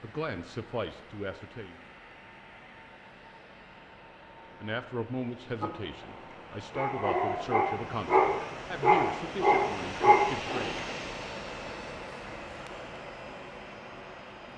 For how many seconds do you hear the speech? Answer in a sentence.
You can hear the speech for 8 seconds altogether.